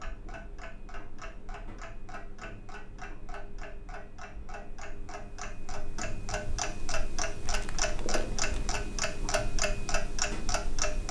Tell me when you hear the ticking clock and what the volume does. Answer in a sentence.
The ticking clock can be heard from 0.0 to 11.0 s, getting louder.